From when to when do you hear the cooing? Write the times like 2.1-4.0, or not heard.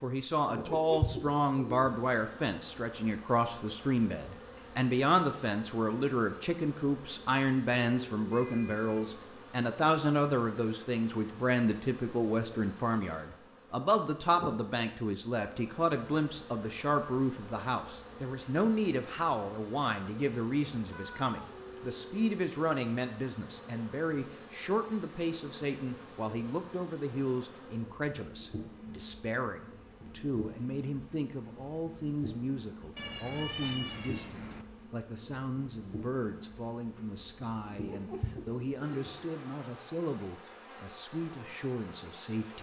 0.5-1.9, 37.7-39.4.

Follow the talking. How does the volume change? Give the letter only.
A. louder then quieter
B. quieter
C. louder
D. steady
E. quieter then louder
B.